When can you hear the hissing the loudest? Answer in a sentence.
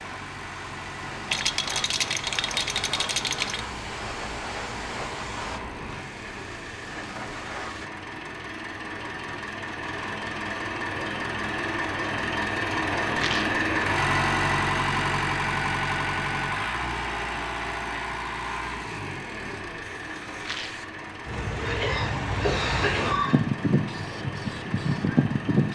The volume of the hissing peaks at 25 seconds.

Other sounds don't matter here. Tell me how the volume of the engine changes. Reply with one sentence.
The volume of the engine goes up, then down.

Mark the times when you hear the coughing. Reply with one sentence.
The coughing can be heard from 21.6 to 23.4 s.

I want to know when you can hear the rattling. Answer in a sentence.
The rattling can be heard from 1.2 to 3.6 s, from 13.1 to 13.6 s and from 20.4 to 20.9 s.